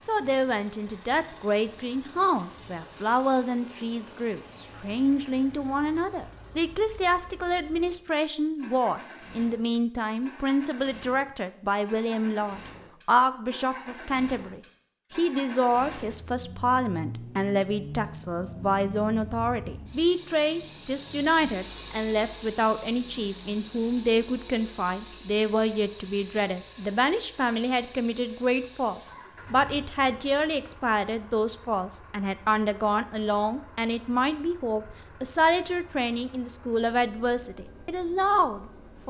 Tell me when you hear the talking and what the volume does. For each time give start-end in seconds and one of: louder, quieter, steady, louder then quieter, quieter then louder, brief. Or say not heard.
0.0-39.0 steady.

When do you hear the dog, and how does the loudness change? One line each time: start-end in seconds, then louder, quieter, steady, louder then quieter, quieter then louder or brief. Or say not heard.
not heard.